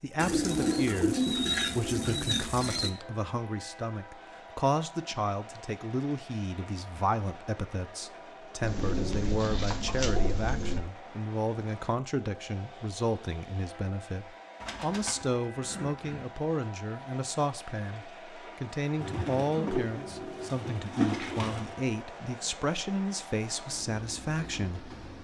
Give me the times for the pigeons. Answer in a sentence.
The pigeons can be heard from 0.1 to 2.9 s, from 8.6 to 10.8 s, from 14.6 to 16.2 s and from 18.9 to 21.8 s.